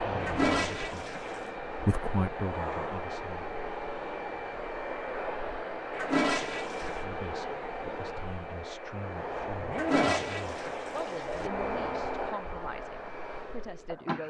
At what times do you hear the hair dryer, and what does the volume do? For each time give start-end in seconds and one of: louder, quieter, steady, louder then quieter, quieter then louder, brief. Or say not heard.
0.0-14.2 steady.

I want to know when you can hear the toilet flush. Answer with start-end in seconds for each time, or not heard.
0.2-1.5, 5.9-7.0, 9.7-11.5.